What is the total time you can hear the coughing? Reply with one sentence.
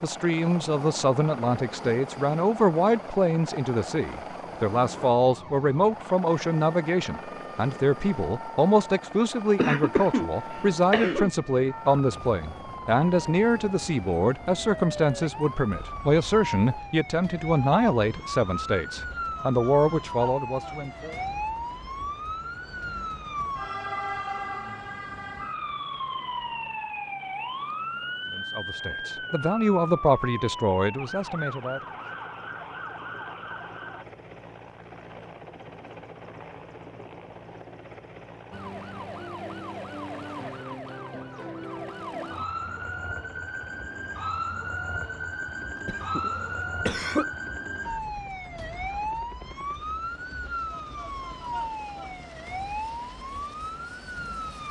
You can hear the coughing for 3 seconds altogether.